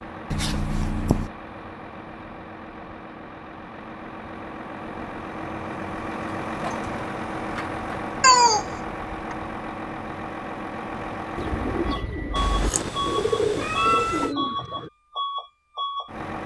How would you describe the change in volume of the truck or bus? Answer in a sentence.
The volume of the truck or bus goes up.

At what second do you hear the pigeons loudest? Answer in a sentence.
The volume of the pigeons peaks at 13 seconds.